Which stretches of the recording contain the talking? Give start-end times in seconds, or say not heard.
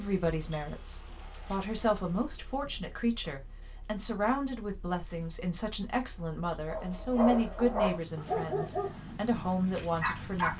0.0-10.5.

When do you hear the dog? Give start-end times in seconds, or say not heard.
6.7-10.5.